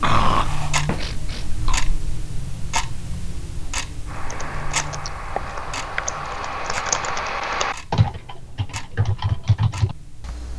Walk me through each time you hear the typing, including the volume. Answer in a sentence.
You can hear the typing from 4.0 to 10.5 s, getting louder.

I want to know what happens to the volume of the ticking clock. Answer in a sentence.
The volume of the ticking clock goes down.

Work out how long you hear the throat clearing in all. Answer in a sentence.
The throat clearing can be heard for 2 seconds in total.